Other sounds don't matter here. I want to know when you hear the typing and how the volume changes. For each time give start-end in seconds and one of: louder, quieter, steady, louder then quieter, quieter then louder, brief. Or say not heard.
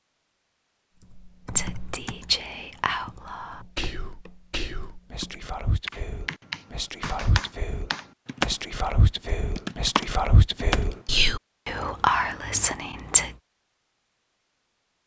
1.0-8.9 quieter then louder
9.6-10.9 brief.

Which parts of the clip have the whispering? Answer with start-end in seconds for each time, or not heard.
1.6-13.3.